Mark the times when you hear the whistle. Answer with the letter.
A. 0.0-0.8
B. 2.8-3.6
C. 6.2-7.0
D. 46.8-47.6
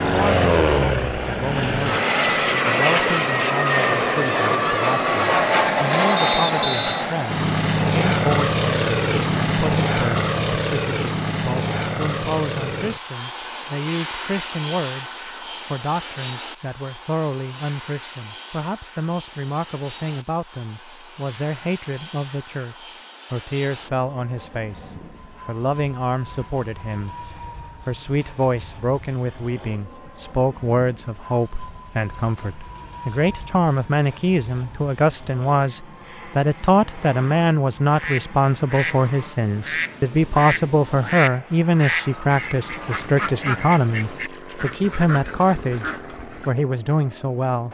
C.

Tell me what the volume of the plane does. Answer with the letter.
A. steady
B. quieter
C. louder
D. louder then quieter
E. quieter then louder
B.